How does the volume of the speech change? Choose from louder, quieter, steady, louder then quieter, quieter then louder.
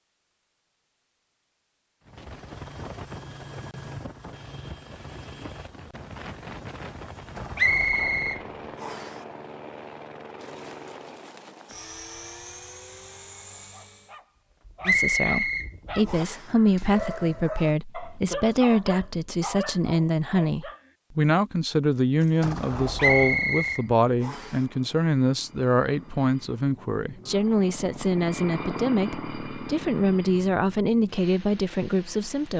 steady.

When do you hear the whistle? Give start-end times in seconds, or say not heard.
7.5-9.2, 14.8-16.4, 22.9-24.6.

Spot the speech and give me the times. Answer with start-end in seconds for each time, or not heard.
14.8-32.5.